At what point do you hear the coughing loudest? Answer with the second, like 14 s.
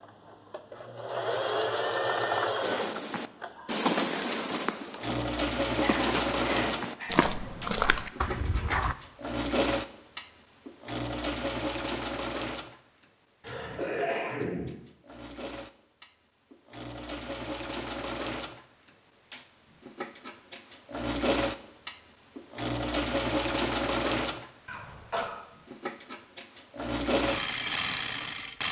14 s.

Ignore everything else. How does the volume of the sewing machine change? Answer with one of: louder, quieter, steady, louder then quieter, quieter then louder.
quieter then louder.